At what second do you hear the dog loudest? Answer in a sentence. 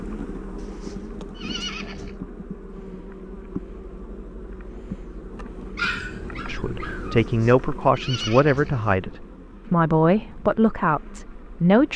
The loudest moment of the dog is at 6 seconds.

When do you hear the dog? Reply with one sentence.
You can hear the dog from 5.8 to 7.2 s.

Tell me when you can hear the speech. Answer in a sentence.
You can hear the speech from 6.5 to 11.9 s.